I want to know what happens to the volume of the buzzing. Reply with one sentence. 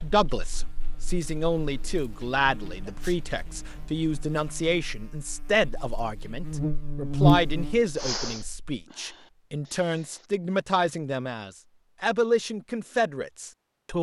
The loudness of the buzzing goes up.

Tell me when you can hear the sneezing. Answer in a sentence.
You can hear the sneezing from 2.9 to 3.3 s and from 8.0 to 10.2 s.